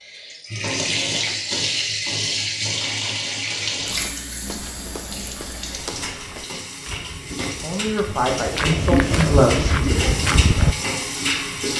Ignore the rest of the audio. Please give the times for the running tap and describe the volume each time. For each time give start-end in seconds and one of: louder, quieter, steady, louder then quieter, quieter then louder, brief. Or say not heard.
0.0-11.7 quieter then louder.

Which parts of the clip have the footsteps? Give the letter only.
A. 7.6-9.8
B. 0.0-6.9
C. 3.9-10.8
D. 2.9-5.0
C.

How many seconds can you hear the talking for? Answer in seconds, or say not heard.
2 s.